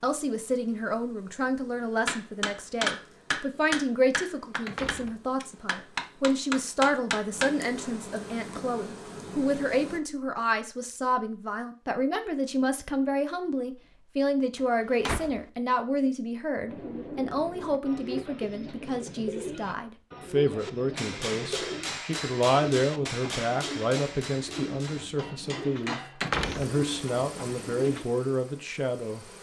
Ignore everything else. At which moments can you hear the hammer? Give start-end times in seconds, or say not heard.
2.0-7.5, 20.6-26.3.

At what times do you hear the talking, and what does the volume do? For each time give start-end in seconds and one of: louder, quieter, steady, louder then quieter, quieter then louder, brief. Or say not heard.
0.0-29.2 steady.